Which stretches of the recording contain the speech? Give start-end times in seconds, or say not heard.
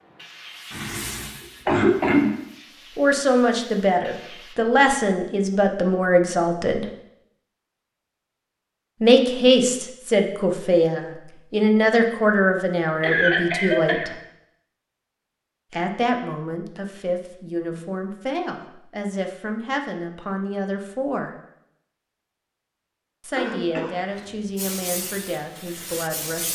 3.0-6.8, 9.0-14.1, 15.7-21.3, 23.2-26.4.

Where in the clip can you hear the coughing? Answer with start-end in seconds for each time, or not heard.
0.7-2.3, 13.0-14.2, 23.4-24.2.